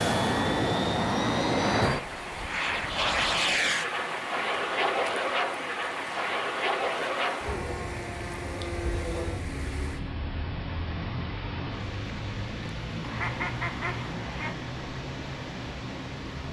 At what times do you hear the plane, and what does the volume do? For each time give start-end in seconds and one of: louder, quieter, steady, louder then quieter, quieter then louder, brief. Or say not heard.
0.0-16.4 quieter.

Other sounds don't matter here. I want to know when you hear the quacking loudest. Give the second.
13 s.